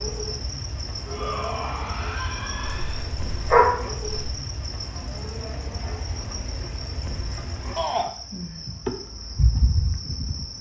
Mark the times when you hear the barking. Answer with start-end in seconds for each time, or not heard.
2.6-4.3.